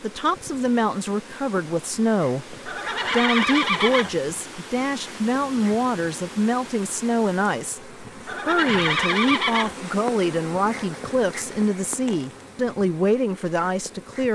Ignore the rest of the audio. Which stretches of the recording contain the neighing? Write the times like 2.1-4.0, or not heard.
2.6-4.2, 8.2-9.8.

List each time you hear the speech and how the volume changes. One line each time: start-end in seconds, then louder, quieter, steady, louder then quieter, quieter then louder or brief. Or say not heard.
0.0-14.2 steady.